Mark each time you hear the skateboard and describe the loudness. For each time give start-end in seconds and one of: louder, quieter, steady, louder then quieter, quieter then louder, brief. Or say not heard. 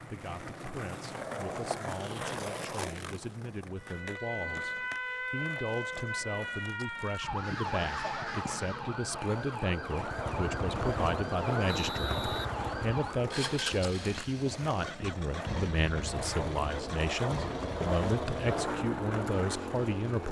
0.0-20.2 quieter then louder.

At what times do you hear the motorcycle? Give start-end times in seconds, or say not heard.
9.9-20.2.